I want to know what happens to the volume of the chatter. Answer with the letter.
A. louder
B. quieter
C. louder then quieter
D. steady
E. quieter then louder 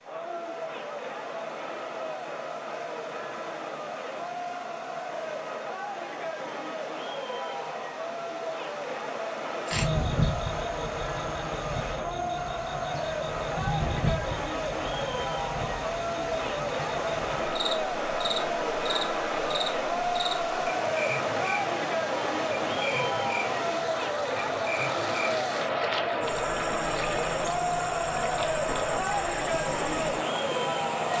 A.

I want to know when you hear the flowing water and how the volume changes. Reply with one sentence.
You can hear the flowing water from 0.0 to 31.1 s, getting louder.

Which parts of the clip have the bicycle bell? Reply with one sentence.
You can't hear the bicycle bell here.